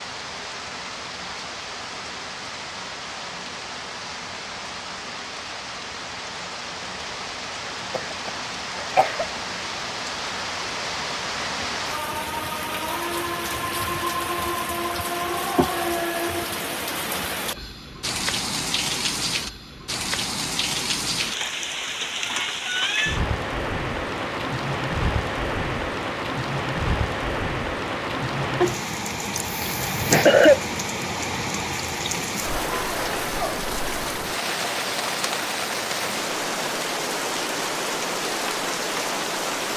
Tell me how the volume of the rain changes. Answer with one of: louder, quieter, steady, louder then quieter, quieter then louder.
louder.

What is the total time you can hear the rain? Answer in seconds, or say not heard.
40 s.